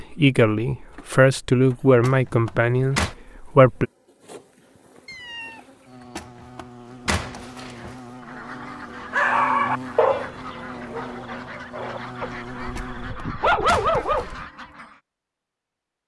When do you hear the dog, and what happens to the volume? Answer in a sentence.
You can hear the dog from 9.1 to 14.4 s, getting quieter then louder.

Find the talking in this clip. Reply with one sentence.
You can hear the talking from 0.0 to 3.9 s.